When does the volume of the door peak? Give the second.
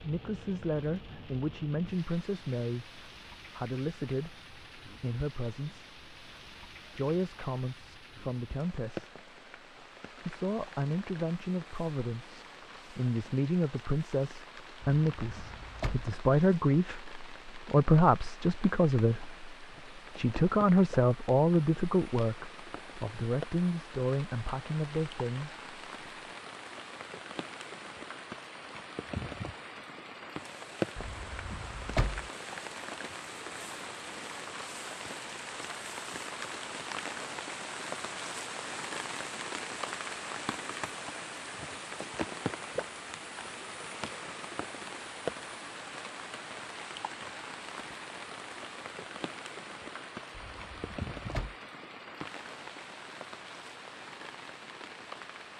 32 s.